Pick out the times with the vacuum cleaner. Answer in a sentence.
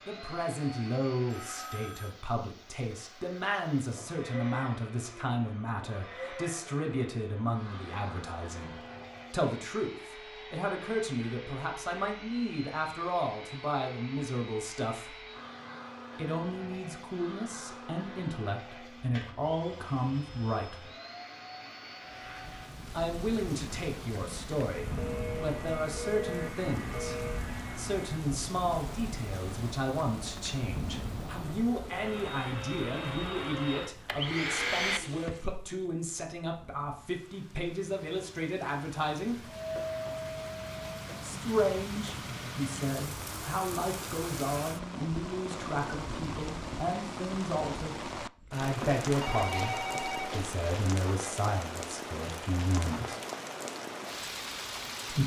The vacuum cleaner can be heard from 0.0 to 35.5 s and from 39.5 to 41.2 s.